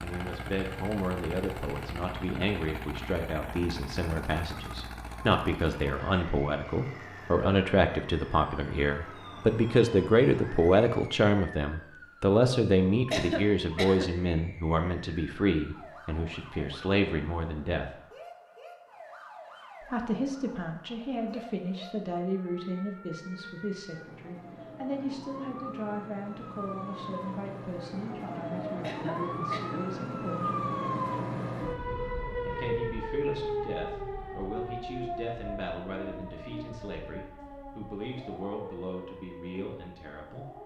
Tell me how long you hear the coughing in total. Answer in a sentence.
The coughing can be heard for 2 seconds in total.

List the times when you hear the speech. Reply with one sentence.
You can hear the speech from 0.0 to 17.9 s, from 19.8 to 30.6 s and from 32.5 to 40.5 s.